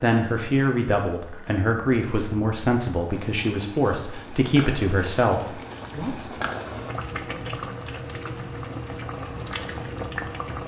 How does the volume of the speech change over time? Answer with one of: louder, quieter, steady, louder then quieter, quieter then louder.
steady.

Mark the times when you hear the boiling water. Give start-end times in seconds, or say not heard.
0.0-10.6.